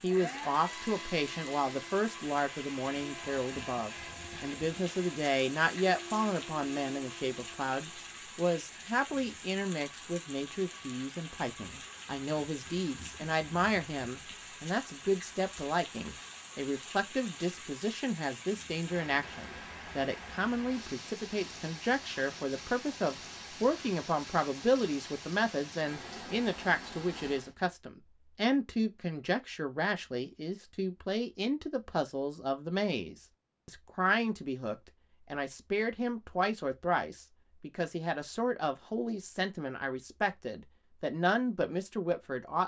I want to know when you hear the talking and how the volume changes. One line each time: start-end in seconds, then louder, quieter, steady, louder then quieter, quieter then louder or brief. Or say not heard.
0.0-42.6 steady.